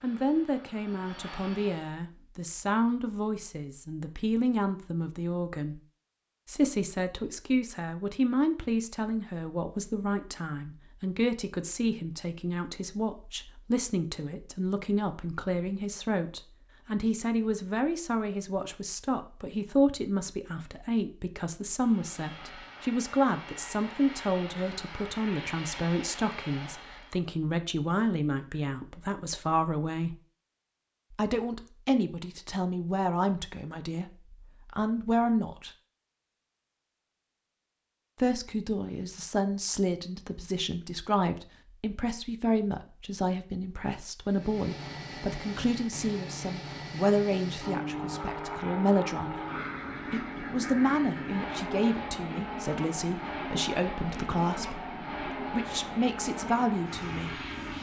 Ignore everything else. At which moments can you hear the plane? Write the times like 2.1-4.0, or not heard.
0.0-1.9, 21.8-27.2, 44.2-57.7.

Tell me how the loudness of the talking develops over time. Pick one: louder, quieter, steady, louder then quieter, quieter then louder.
steady.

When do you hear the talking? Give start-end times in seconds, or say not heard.
0.0-5.8, 6.5-30.1, 31.1-35.7, 38.1-49.5, 50.0-57.5.